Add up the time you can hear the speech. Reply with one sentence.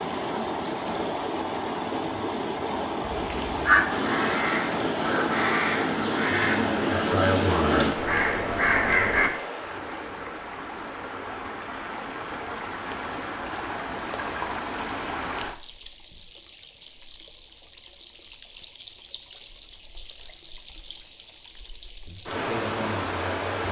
You can hear the speech for 3 seconds altogether.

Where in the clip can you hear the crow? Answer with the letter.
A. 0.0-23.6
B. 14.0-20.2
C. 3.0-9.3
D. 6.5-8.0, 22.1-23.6
C.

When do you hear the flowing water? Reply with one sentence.
You can hear the flowing water from 0.0 to 23.6 s.